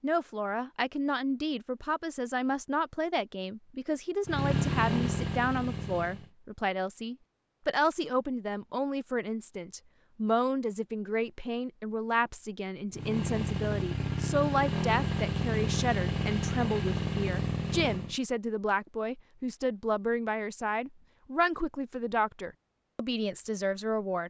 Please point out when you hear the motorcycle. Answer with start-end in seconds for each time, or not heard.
4.2-6.3, 12.9-18.1.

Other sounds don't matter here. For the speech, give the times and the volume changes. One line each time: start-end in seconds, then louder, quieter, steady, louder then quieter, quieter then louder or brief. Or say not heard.
0.0-24.2 steady.